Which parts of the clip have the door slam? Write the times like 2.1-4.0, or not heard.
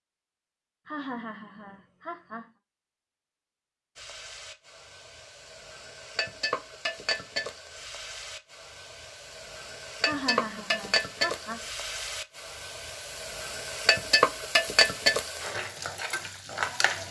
not heard.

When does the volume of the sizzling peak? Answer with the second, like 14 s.
15 s.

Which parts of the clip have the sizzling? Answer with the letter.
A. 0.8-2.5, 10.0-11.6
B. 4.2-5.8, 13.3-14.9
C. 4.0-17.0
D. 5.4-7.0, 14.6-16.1
C.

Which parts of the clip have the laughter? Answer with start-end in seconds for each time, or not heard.
0.8-2.5, 10.0-11.6.